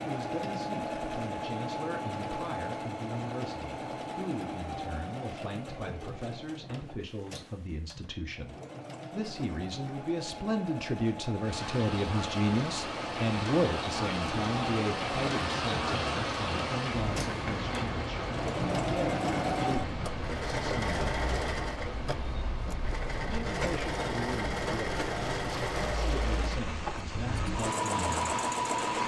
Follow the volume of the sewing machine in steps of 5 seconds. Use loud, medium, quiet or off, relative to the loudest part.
loud, medium, medium, loud, loud, loud.